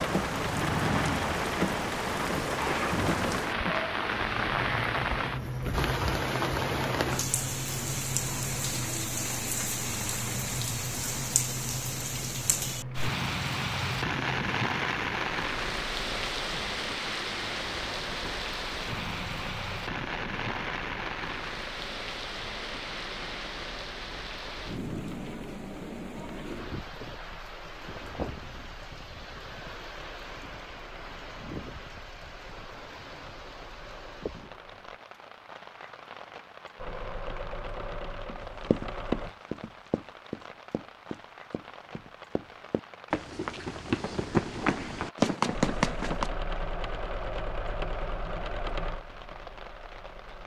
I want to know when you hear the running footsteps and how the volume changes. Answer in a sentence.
The running footsteps can be heard from 38.2 to 46.3 s, getting quieter then louder.